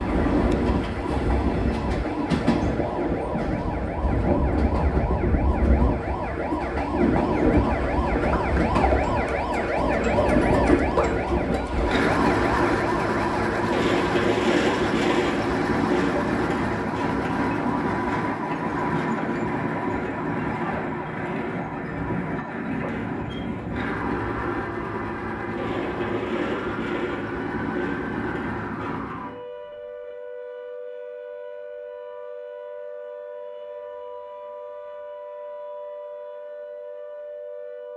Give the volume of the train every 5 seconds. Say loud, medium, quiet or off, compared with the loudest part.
loud, loud, loud, loud, medium, medium, off, off.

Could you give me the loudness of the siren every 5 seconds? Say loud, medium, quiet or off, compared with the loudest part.
medium, loud, loud, medium, medium, medium, medium, medium.